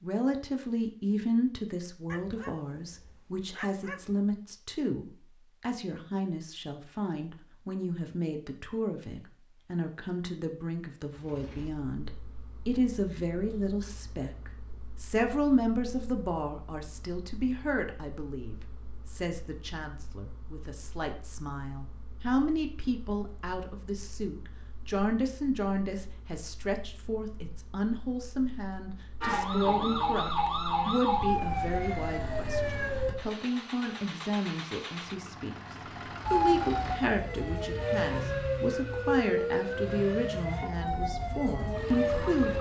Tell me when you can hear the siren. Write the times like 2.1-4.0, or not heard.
29.2-33.1, 36.2-42.5.